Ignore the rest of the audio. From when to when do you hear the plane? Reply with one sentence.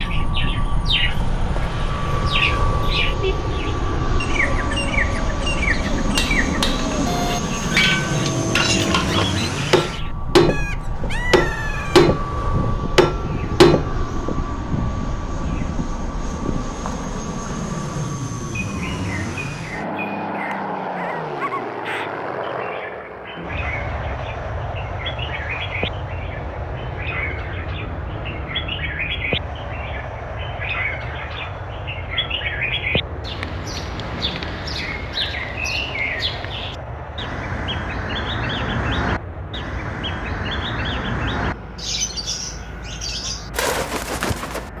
The plane can be heard from 0.0 to 44.7 s.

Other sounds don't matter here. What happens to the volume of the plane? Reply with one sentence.
The volume of the plane goes down.